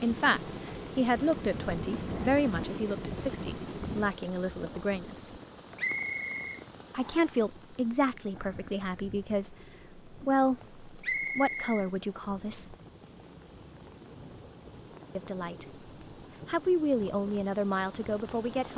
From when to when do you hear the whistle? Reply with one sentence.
You can hear the whistle from 5.8 to 7.3 s and from 11.0 to 11.8 s.